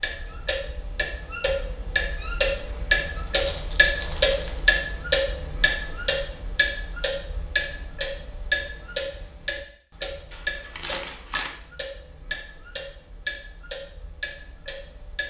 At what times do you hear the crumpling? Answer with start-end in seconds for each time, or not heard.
3.4-4.8, 10.3-11.5.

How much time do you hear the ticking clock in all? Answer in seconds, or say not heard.
15 s.